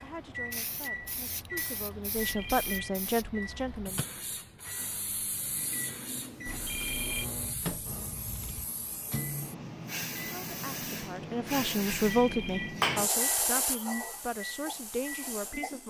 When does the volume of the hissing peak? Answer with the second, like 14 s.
13 s.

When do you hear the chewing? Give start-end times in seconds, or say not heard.
7.2-8.7.